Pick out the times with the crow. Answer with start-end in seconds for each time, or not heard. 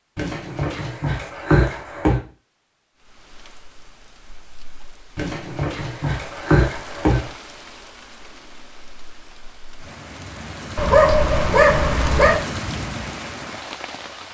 not heard.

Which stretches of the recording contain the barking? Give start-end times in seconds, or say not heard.
0.1-2.1, 5.2-7.3, 10.8-12.4.